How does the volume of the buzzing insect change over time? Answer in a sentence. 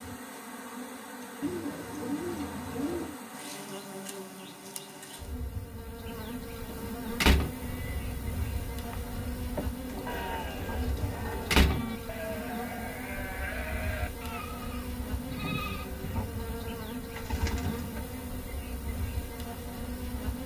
The loudness of the buzzing insect stays about the same.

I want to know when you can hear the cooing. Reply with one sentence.
The cooing can be heard from 1.4 to 3.1 s, from 9.8 to 11.6 s and from 17.1 to 18.1 s.